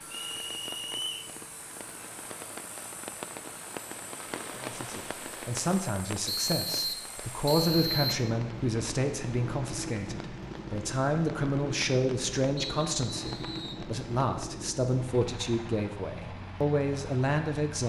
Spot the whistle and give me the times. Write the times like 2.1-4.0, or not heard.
0.1-1.3, 6.2-8.2, 12.6-13.8.